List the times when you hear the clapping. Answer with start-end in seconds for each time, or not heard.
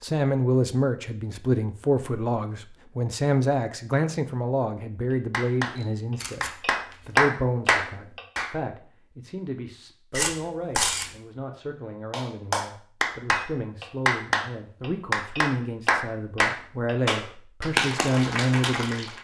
5.3-8.5, 12.1-19.1.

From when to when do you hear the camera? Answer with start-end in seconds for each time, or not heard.
5.7-7.0, 10.1-11.1.